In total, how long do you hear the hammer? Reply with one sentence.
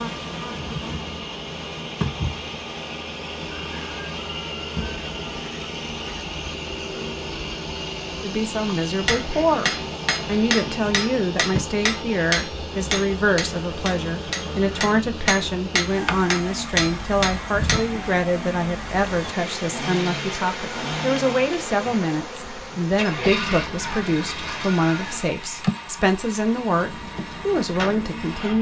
You can hear the hammer for 9 seconds altogether.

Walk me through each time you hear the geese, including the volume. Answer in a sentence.
You can't hear the geese here.